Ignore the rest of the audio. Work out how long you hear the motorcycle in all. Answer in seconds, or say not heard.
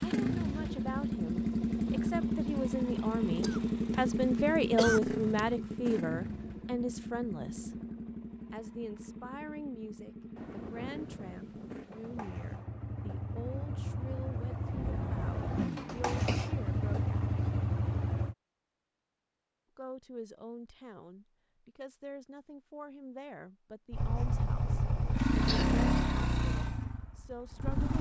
22 s.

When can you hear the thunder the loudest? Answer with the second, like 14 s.
15 s.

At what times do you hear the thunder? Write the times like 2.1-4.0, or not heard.
10.3-12.3, 14.7-16.2.